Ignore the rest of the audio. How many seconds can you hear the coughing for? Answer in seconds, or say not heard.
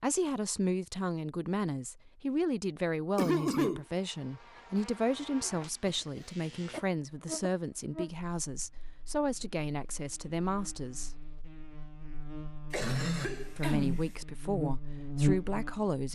3 s.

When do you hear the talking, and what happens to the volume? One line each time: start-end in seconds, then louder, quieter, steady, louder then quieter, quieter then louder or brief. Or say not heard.
0.0-11.2 steady
13.6-16.1 brief.